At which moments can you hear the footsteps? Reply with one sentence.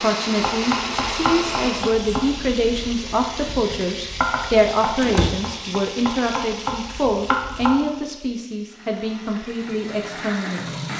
You can't hear the footsteps here.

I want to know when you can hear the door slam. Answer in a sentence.
You can hear the door slam from 5.0 to 5.4 s.